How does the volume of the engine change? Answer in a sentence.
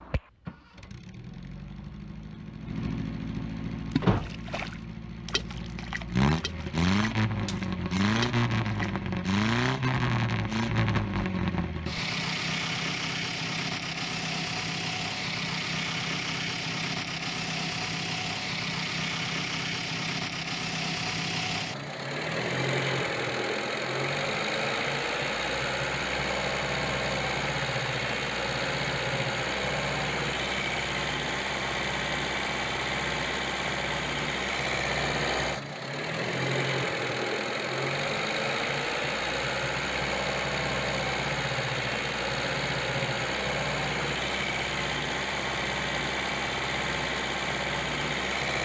The volume of the engine stays about the same.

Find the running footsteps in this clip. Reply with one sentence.
The running footsteps can't be heard in this clip.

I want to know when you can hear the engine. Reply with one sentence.
The engine can be heard from 0.0 to 48.6 s.